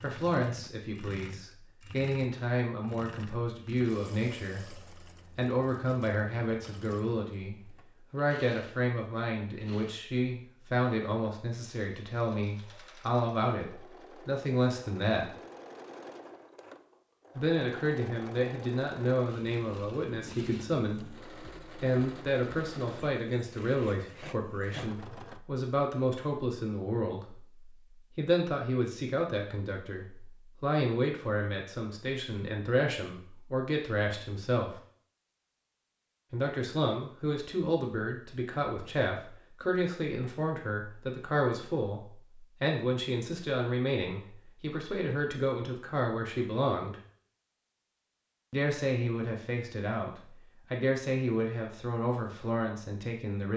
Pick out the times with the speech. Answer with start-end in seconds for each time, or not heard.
0.0-15.3, 17.4-34.8, 36.3-47.0, 48.5-53.5.